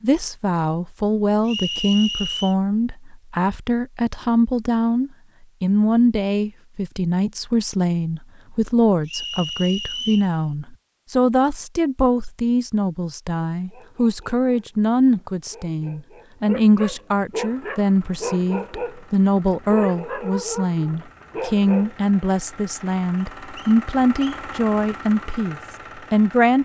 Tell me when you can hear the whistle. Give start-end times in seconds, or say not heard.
1.4-2.5, 9.1-10.3, 23.1-24.4.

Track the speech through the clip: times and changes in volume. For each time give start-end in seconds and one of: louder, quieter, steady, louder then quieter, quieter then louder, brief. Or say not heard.
0.0-26.6 steady.